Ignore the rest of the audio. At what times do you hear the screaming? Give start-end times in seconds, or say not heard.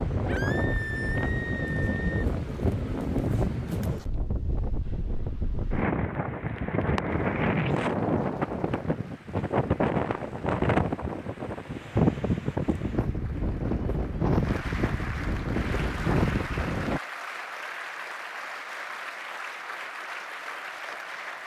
0.2-2.2.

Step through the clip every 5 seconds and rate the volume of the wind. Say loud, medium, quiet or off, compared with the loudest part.
loud, loud, loud, loud, off.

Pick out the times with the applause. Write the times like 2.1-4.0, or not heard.
7.0-21.4.